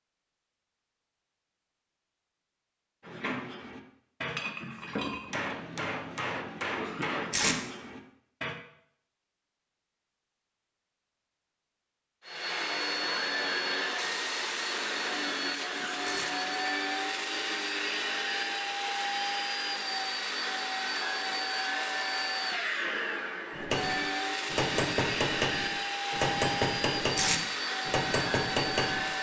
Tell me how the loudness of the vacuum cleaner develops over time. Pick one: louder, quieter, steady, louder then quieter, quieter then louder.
steady.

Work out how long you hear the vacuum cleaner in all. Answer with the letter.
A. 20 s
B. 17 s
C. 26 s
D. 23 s
B.